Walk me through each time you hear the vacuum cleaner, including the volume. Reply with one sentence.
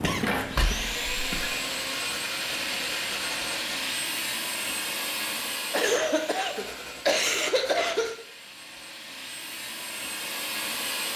You can hear the vacuum cleaner from 0.0 to 11.1 s, getting quieter then louder.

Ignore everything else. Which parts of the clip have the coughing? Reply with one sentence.
You can hear the coughing from 0.0 to 1.5 s and from 5.7 to 8.2 s.